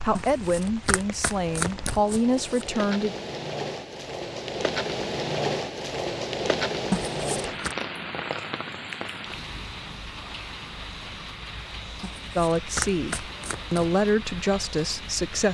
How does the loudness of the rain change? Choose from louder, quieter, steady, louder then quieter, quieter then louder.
louder then quieter.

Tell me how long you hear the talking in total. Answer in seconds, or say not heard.
6 s.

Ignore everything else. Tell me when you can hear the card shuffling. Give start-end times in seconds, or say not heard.
0.1-2.7, 6.9-7.8, 12.0-13.9.